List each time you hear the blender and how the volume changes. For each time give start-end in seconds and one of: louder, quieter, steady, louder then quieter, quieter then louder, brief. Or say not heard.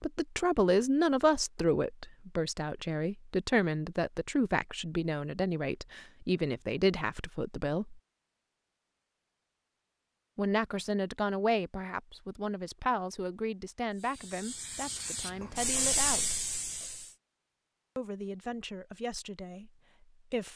not heard.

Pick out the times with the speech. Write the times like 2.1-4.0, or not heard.
0.0-8.0, 10.3-16.4, 17.9-20.5.